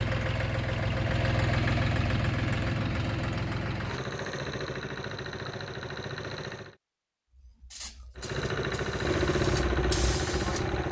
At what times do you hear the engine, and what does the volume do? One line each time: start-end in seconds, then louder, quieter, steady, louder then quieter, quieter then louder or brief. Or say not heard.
0.0-6.8 quieter
8.2-10.8 brief.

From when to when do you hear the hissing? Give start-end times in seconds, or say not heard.
7.3-10.8.